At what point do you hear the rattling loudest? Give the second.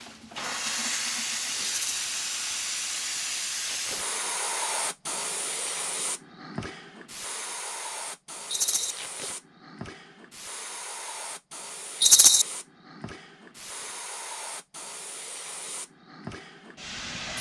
12 s.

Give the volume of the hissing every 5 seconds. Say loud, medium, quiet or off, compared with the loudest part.
loud, medium, medium, medium.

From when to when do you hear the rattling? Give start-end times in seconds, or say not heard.
1.6-2.0, 8.5-8.9, 12.0-12.4.